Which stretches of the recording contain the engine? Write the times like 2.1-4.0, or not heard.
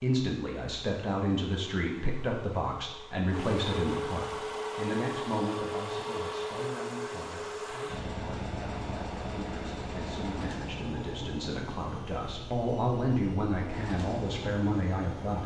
0.0-15.4.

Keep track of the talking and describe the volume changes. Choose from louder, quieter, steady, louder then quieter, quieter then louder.
quieter then louder.